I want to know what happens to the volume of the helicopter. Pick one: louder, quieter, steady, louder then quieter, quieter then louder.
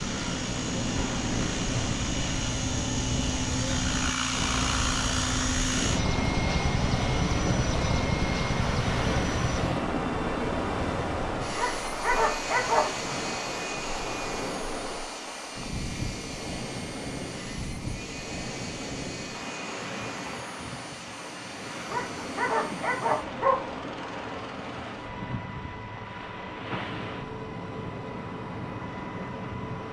quieter.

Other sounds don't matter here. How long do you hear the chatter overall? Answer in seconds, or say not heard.
not heard.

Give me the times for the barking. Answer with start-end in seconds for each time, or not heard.
11.6-12.9, 21.9-23.7.